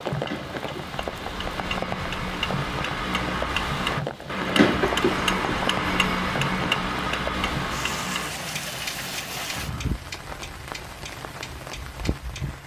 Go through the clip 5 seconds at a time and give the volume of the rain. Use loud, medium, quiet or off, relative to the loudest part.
loud, loud, medium.